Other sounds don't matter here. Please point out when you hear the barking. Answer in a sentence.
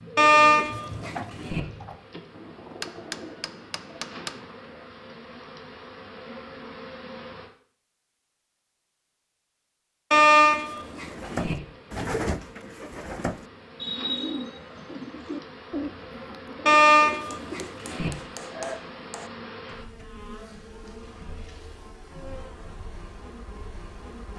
The barking can be heard from 0.1 to 1.6 s, from 10.1 to 11.6 s and from 16.6 to 18.1 s.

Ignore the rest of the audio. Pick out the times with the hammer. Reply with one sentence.
The hammer can be heard from 2.8 to 4.5 s and from 17.3 to 19.3 s.